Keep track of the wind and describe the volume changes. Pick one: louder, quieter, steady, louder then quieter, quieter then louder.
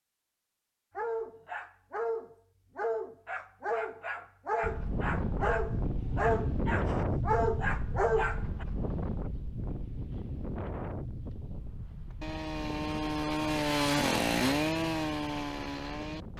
quieter.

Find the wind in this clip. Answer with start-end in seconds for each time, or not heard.
4.6-16.3.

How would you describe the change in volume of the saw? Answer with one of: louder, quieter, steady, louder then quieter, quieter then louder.
louder then quieter.